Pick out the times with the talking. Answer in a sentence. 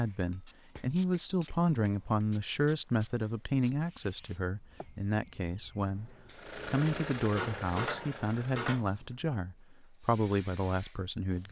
You can hear the talking from 0.0 to 11.4 s.